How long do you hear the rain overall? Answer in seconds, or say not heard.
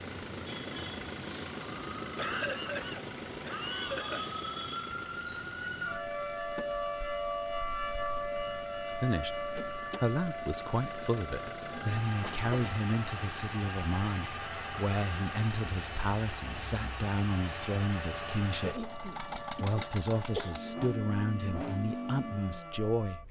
not heard.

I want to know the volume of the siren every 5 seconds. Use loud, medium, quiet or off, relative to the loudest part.
medium, loud, medium, medium, medium.